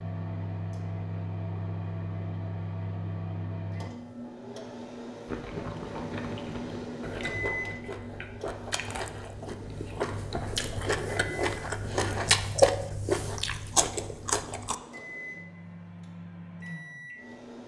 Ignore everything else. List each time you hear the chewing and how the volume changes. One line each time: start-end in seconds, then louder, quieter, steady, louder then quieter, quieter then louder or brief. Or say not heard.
5.2-14.8 louder.